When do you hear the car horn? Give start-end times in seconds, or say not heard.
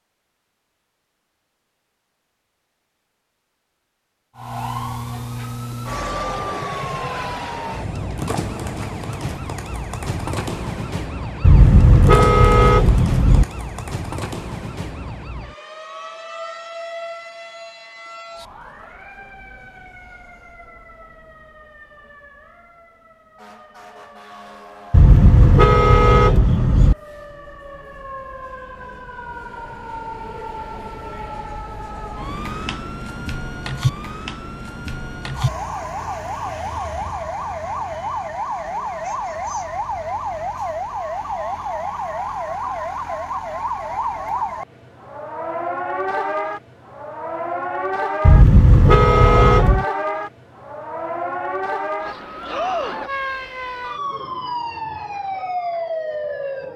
11.4-13.4, 24.9-26.9, 48.2-49.9.